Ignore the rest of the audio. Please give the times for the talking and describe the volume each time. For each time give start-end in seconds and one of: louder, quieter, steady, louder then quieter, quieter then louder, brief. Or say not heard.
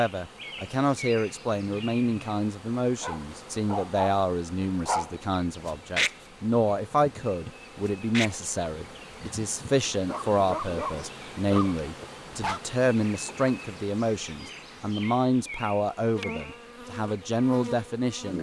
0.0-18.3 steady.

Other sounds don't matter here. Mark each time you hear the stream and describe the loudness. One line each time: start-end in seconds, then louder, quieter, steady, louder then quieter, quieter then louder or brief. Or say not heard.
not heard.